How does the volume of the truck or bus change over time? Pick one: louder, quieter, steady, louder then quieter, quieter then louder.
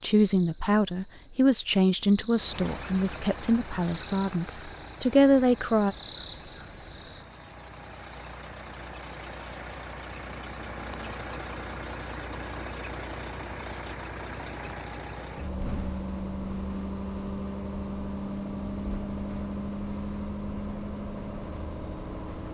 louder.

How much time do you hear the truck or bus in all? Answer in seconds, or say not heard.
20 s.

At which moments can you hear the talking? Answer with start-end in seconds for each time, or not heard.
0.0-6.0.